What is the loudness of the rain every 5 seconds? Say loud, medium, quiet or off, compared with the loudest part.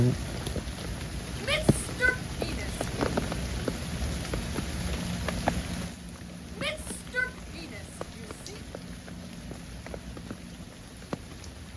loud, medium, medium.